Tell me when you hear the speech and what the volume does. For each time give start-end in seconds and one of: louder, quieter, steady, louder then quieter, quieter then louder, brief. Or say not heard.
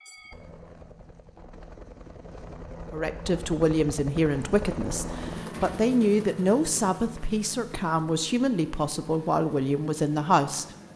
2.9-10.7 steady.